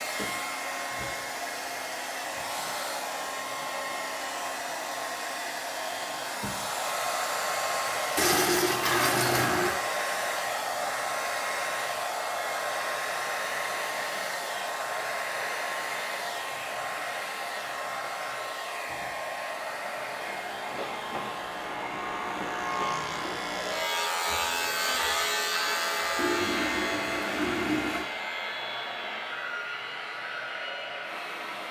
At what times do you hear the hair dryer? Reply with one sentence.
You can hear the hair dryer from 0.0 to 31.6 s.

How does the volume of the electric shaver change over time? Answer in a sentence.
The loudness of the electric shaver goes up, then down.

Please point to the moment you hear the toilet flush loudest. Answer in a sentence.
The volume of the toilet flush peaks at 9 seconds.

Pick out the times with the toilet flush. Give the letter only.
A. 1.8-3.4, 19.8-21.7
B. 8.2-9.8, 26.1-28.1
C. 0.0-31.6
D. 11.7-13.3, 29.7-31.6
B.